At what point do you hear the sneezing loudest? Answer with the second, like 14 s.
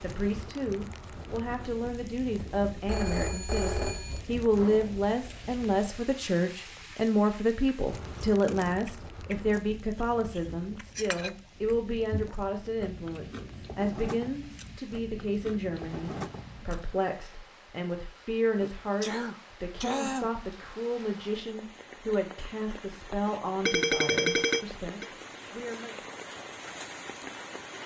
20 s.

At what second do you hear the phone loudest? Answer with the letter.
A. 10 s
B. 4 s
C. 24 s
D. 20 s
C.